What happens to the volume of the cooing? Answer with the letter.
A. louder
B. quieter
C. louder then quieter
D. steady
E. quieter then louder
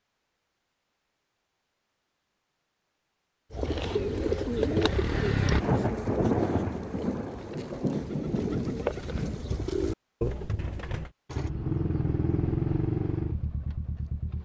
E.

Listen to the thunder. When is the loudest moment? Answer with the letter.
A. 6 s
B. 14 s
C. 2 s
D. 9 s
A.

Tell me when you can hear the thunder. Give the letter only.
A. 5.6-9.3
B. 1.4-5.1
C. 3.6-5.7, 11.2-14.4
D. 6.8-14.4
A.